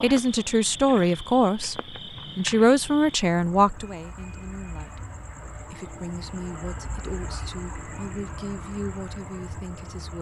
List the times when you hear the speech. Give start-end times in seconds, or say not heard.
0.0-5.0, 5.7-10.1.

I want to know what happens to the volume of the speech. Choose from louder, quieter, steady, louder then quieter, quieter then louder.
quieter.